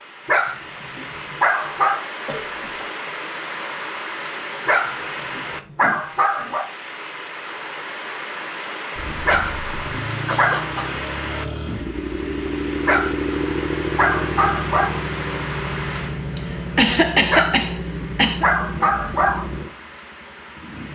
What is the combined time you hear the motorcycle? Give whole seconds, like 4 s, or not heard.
12 s.